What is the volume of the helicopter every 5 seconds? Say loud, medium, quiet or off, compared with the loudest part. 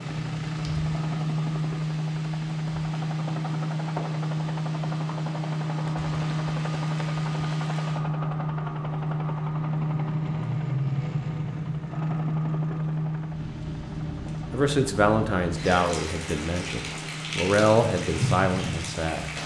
loud, loud, loud, medium.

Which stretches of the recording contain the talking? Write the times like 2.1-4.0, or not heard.
14.5-19.3.